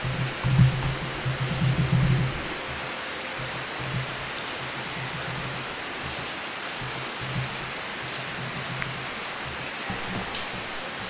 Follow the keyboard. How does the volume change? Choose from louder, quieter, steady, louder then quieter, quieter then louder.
quieter.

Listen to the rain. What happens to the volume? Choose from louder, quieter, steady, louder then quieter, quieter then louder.
steady.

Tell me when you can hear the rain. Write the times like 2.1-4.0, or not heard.
0.0-11.0.